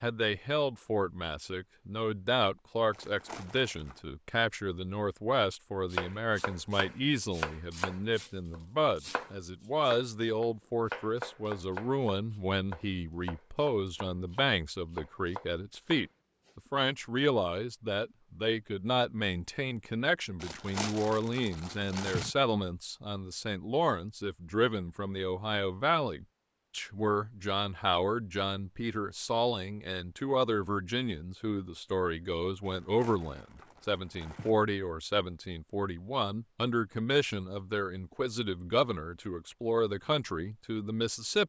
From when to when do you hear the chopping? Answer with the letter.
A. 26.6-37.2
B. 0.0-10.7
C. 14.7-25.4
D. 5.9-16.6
D.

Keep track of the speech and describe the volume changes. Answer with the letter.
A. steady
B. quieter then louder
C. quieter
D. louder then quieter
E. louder
A.